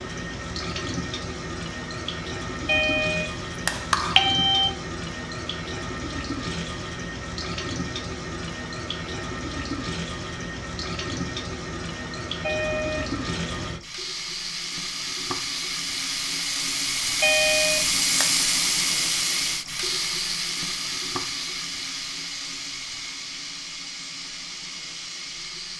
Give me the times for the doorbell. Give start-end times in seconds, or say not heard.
2.6-4.7, 12.4-13.1, 17.2-18.2.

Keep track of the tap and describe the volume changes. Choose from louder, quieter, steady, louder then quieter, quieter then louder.
louder then quieter.